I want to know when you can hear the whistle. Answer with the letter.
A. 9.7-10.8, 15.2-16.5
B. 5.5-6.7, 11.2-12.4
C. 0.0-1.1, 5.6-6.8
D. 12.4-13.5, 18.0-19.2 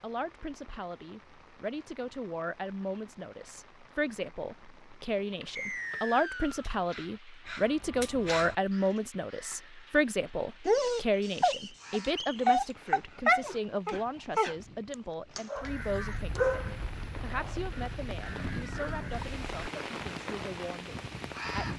B.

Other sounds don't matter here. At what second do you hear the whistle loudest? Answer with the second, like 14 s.
6 s.